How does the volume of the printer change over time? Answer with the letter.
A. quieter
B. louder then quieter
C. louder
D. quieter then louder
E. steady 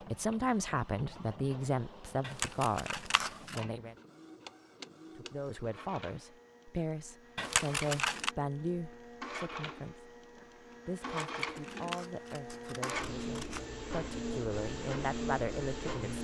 C.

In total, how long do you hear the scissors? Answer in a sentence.
The scissors can be heard for 5 seconds in total.